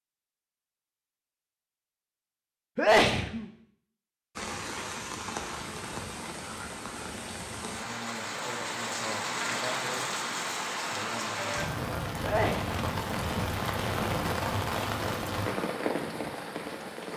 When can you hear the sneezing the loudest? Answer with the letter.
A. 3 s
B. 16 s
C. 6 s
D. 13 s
A.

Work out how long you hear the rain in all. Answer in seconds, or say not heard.
13 s.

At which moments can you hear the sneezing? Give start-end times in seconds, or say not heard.
2.8-3.5, 12.2-14.1.